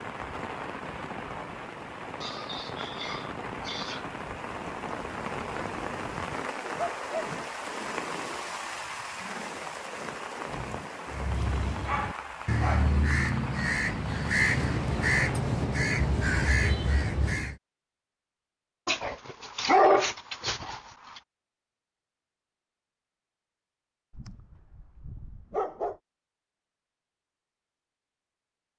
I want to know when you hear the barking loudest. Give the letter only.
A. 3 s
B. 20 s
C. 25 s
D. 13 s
B.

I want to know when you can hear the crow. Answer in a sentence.
The crow can be heard from 11.1 to 17.6 s.